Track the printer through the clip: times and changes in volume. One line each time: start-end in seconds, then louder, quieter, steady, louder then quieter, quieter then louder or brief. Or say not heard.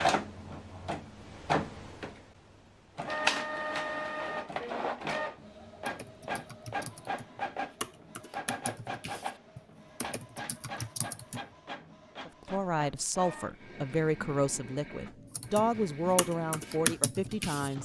0.0-17.8 quieter.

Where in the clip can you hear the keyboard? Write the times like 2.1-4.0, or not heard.
5.8-11.4, 15.3-17.7.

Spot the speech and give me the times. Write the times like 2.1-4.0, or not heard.
12.2-17.8.